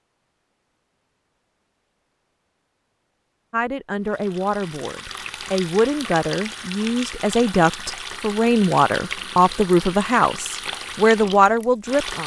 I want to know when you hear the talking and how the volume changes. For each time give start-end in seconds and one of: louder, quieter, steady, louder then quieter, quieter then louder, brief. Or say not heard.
3.5-12.2 louder.